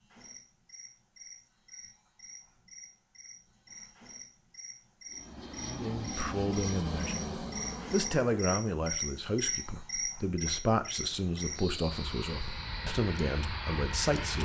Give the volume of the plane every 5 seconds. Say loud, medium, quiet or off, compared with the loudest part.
off, loud, loud.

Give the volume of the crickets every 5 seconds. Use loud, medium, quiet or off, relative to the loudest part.
quiet, loud, loud.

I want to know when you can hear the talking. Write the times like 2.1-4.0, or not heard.
5.5-14.3.